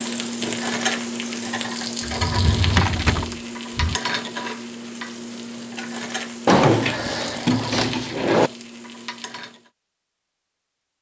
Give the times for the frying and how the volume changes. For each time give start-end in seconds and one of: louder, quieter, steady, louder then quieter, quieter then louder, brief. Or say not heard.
0.0-9.7 quieter.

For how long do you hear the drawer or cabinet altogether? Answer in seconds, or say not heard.
4 s.